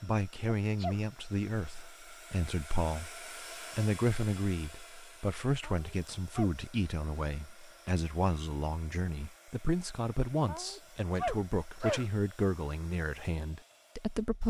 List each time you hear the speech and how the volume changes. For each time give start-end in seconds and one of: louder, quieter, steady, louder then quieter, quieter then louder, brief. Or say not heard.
0.0-14.4 steady.